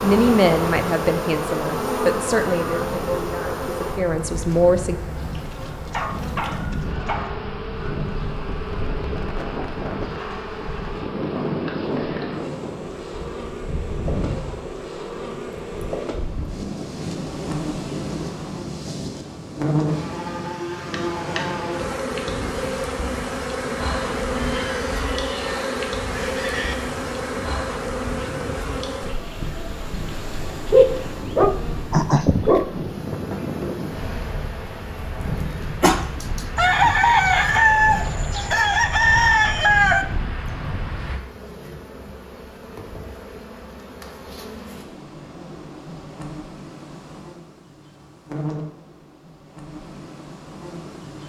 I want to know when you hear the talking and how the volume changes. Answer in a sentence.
The talking can be heard from 0.0 to 5.0 s, getting quieter then louder.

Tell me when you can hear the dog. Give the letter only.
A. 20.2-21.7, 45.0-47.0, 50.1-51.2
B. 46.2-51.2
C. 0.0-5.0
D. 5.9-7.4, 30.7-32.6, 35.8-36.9
D.